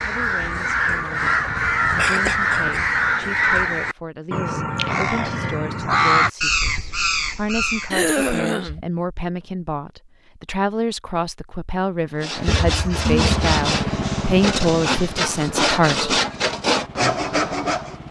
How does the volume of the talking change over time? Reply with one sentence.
The volume of the talking goes up.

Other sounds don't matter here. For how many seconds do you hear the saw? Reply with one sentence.
You can hear the saw for 6 seconds altogether.